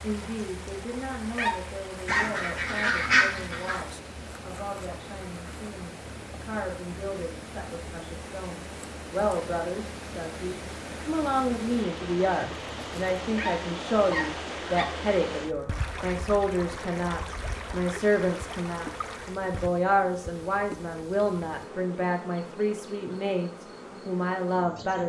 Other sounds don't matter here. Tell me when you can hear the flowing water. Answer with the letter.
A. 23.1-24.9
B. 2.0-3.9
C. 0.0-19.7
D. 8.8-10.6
C.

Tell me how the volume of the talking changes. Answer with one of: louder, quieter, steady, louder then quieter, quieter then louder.
louder.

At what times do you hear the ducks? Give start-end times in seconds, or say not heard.
2.0-3.9.